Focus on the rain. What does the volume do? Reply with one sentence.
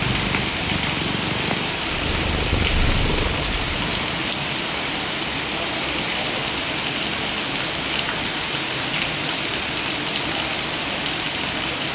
The volume of the rain stays about the same.